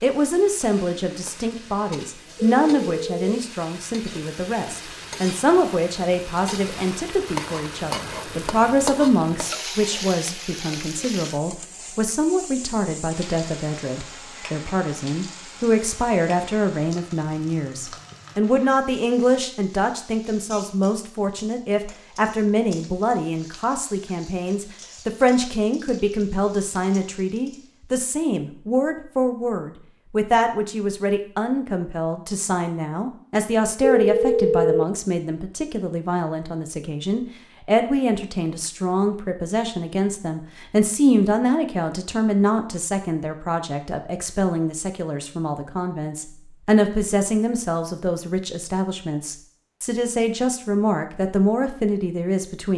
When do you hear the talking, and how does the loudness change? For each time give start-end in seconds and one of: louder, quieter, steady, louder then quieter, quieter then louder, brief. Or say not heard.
0.0-52.7 steady.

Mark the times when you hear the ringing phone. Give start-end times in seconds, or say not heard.
2.4-3.4, 33.8-34.9.